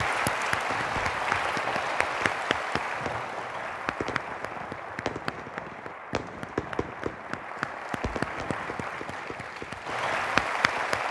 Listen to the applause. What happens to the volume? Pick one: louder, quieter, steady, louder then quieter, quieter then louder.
quieter then louder.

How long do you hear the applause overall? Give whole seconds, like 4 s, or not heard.
11 s.